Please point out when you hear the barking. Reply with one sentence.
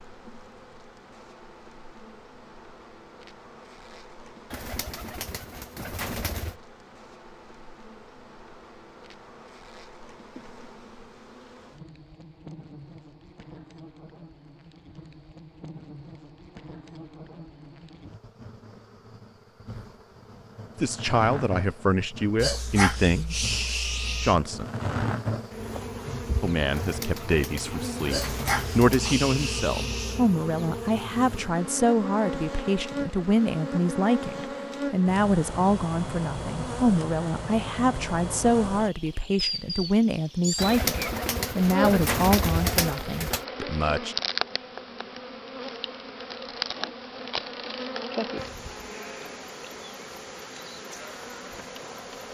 You can hear the barking from 22.4 to 24.4 s and from 28.1 to 30.3 s.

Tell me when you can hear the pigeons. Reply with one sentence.
The pigeons can be heard from 4.5 to 6.6 s, from 26.7 to 29.1 s and from 40.5 to 43.5 s.